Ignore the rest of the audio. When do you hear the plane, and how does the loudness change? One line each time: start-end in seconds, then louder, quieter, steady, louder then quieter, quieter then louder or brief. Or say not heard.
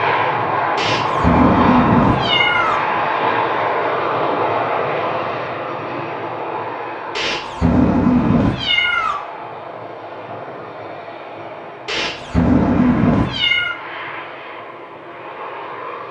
0.0-16.0 quieter.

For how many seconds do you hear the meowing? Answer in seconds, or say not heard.
6 s.